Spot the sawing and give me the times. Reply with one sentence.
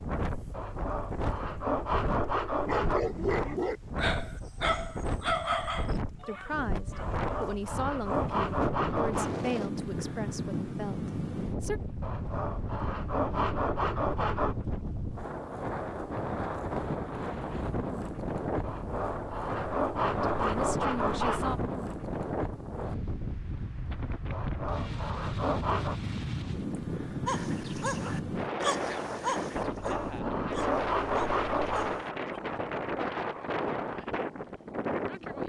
You can hear the sawing from 0.5 to 3.0 s, from 7.0 to 9.3 s, from 12.0 to 14.6 s, from 18.6 to 21.6 s, from 24.3 to 25.9 s and from 29.6 to 32.0 s.